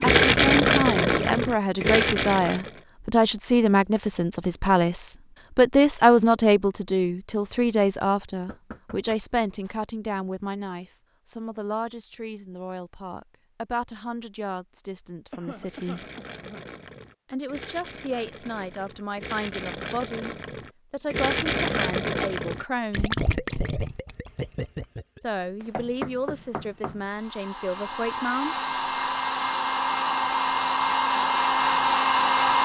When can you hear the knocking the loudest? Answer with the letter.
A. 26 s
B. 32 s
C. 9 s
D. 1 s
A.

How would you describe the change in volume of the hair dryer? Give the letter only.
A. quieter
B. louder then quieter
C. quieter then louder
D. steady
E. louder
E.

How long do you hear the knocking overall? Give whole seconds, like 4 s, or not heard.
3 s.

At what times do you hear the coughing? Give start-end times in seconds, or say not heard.
15.3-16.6.